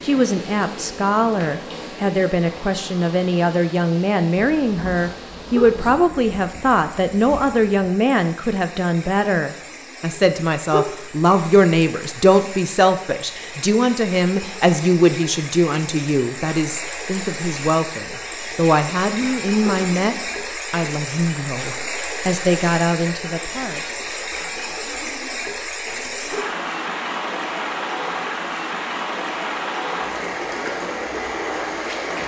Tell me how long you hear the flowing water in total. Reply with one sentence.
The flowing water can be heard for 32 seconds in total.